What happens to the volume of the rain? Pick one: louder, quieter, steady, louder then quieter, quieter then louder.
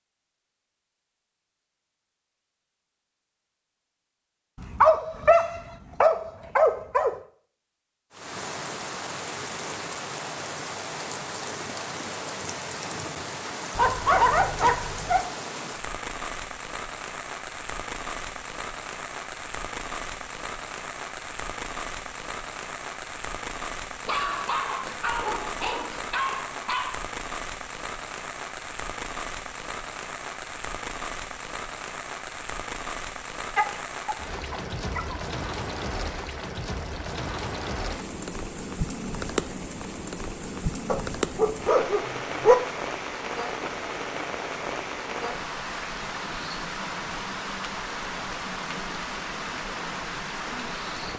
steady.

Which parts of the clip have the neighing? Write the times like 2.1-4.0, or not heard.
not heard.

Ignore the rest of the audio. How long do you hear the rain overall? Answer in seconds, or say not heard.
43 s.